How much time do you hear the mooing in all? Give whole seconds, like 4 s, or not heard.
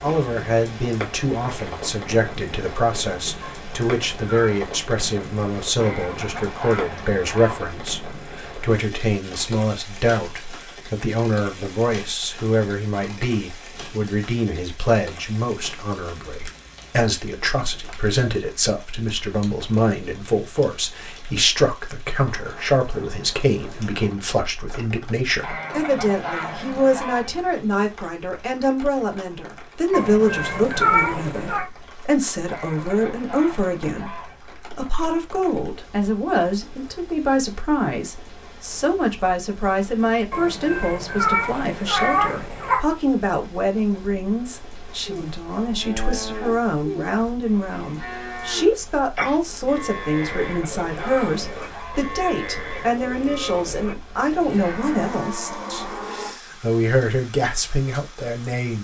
11 s.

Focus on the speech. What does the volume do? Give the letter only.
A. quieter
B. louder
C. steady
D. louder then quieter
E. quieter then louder
C.